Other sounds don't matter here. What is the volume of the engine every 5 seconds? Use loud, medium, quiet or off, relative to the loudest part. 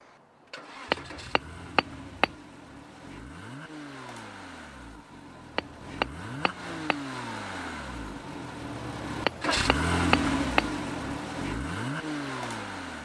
quiet, loud, loud.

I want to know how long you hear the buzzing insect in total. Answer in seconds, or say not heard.
not heard.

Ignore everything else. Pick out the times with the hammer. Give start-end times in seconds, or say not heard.
0.9-2.4, 5.5-7.0, 9.2-10.7.